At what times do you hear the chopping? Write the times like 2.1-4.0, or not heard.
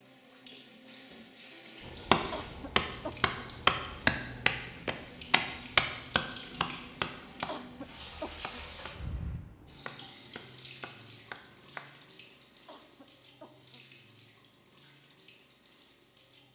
1.8-11.8.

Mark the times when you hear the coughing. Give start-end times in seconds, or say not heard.
2.3-3.5, 7.5-8.7, 12.7-13.8.